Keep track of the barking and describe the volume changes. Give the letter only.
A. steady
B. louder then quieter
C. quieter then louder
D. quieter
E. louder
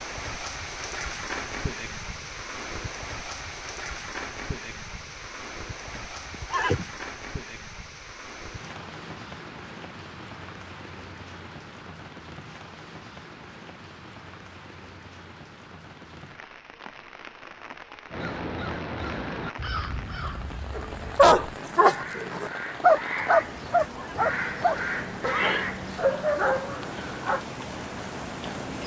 D.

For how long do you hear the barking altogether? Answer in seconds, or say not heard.
7 s.